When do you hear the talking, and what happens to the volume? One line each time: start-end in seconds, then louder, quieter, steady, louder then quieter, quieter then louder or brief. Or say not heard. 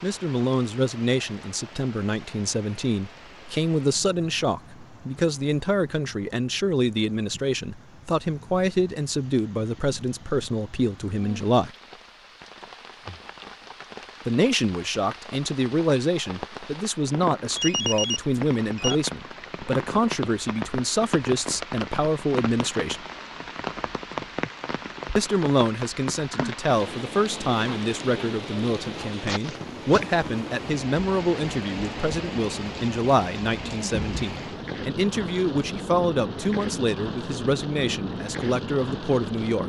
0.0-11.7 steady
14.2-23.0 steady
25.1-39.6 steady.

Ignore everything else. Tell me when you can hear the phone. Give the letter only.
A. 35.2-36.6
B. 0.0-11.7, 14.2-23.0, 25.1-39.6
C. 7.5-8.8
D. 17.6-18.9
D.